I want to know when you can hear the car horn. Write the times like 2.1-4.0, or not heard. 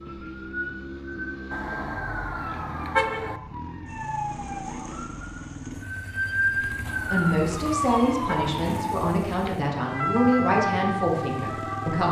1.5-3.4, 6.8-8.7.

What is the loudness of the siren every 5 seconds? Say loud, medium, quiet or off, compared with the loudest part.
medium, loud, loud.